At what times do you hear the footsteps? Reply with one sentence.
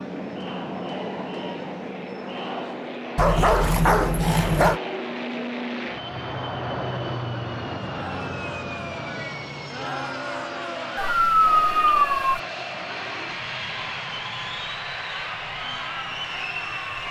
The footsteps can't be heard in this clip.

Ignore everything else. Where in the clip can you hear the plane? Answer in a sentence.
The plane can be heard from 0.0 to 17.0 s.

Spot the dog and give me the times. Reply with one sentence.
The dog can be heard from 3.1 to 4.8 s and from 10.9 to 12.4 s.